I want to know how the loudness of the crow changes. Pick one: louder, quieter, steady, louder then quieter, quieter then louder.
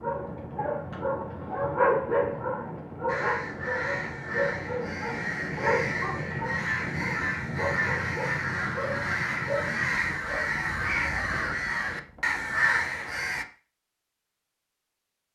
louder.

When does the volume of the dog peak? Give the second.
2 s.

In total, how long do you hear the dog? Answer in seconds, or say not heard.
11 s.